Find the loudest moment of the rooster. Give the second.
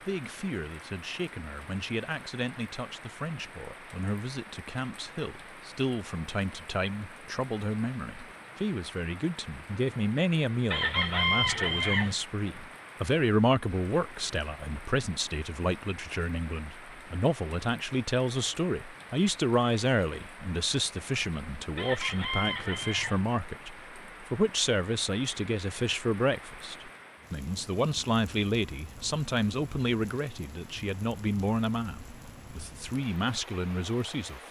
11 s.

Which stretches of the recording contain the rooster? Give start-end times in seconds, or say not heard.
10.7-12.2, 21.8-23.2.